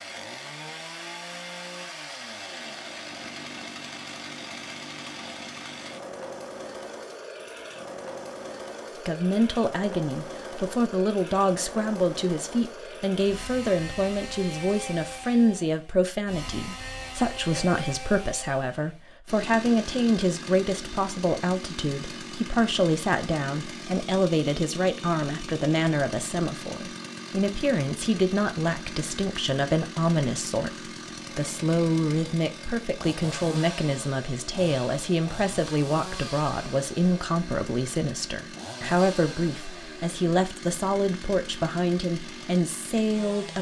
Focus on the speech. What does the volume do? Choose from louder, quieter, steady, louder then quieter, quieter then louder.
steady.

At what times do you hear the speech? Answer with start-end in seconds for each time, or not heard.
9.0-43.5.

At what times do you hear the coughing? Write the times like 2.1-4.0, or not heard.
not heard.